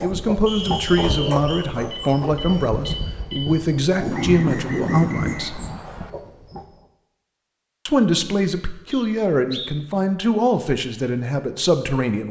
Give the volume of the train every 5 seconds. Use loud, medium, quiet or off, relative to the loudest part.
loud, loud, off.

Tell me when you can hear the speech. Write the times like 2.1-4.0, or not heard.
0.0-5.6, 7.8-12.2.